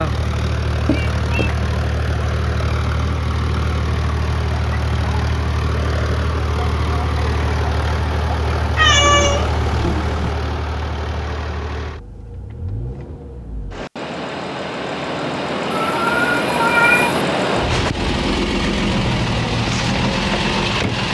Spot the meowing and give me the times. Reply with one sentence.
The meowing can be heard from 0.8 to 1.6 s, from 8.8 to 10.3 s and from 15.7 to 17.2 s.